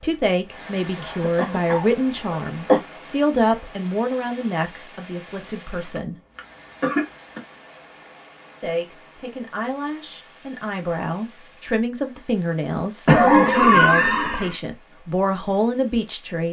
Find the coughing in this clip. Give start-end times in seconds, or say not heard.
0.9-2.8, 5.8-7.4, 13.1-14.6.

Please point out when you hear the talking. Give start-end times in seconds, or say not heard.
0.0-6.2, 8.6-16.4.